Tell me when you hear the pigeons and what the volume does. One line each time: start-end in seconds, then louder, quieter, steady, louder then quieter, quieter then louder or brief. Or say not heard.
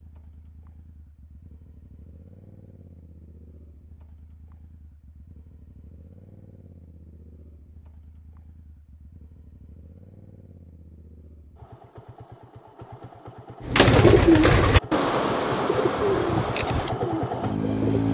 13.7-18.0 quieter.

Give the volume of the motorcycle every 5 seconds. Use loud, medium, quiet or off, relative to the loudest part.
quiet, quiet, quiet, loud.